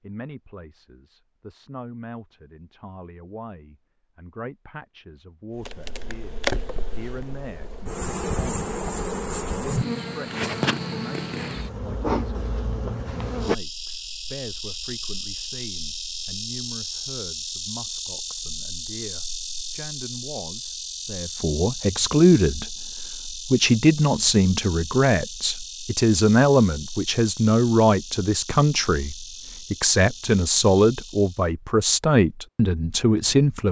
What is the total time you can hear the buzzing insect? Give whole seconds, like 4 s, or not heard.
26 s.